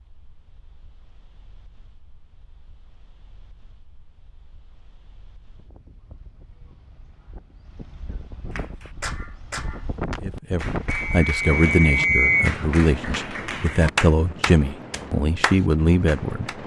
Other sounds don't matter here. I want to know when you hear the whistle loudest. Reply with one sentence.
The volume of the whistle peaks at 12 seconds.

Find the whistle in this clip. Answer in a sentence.
The whistle can be heard from 10.8 to 12.6 s.